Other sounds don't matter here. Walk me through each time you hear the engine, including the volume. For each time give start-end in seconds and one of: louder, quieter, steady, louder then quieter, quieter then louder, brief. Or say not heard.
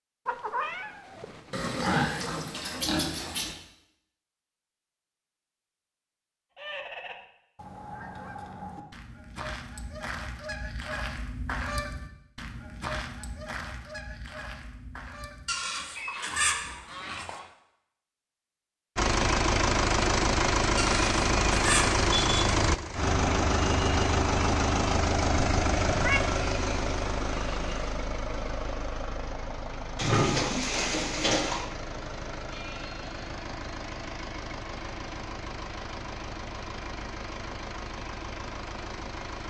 18.9-39.4 quieter.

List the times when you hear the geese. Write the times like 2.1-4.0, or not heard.
6.5-17.5.